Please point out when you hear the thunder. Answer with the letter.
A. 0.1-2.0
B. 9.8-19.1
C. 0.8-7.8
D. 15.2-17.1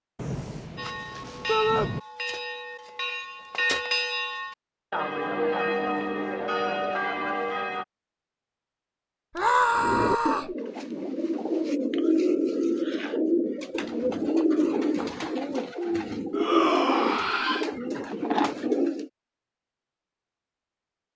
A.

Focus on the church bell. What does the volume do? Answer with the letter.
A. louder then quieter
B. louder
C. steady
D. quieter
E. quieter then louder
B.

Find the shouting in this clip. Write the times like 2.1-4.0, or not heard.
1.4-1.9, 9.3-10.5, 16.3-17.6.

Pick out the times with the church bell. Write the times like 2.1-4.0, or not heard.
0.8-7.8.